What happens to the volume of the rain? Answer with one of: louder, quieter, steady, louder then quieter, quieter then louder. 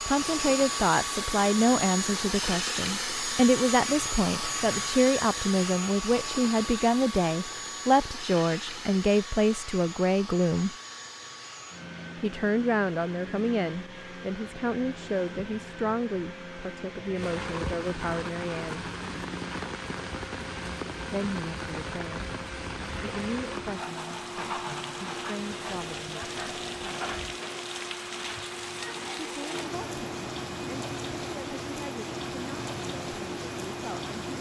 steady.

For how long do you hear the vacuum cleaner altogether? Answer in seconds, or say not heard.
34 s.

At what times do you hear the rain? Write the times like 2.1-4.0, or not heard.
17.1-34.3.